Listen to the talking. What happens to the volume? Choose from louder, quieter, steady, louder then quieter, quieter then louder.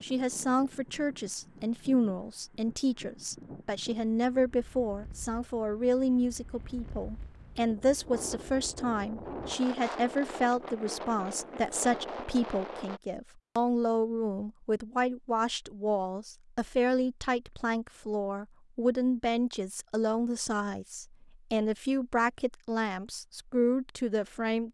steady.